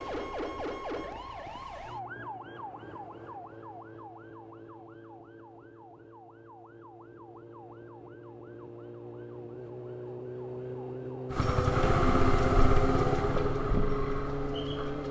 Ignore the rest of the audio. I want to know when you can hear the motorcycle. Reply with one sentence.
The motorcycle can be heard from 11.3 to 15.0 s.